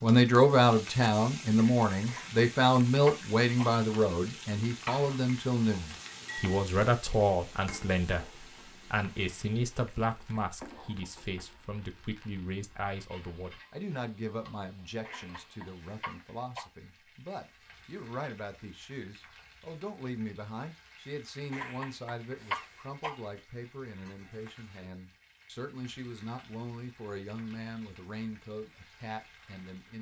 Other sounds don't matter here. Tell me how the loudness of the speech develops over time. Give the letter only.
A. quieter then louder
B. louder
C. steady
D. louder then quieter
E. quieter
E.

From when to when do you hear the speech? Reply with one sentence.
You can hear the speech from 0.0 to 29.9 s.